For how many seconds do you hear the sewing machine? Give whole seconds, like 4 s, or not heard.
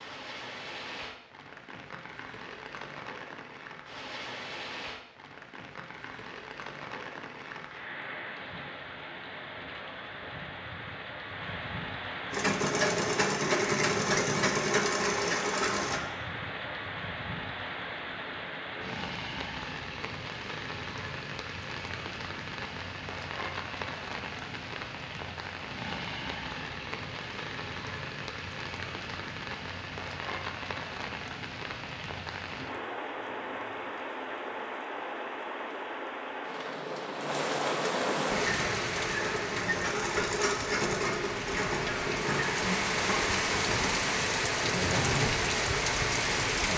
11 s.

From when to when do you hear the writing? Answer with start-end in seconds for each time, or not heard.
not heard.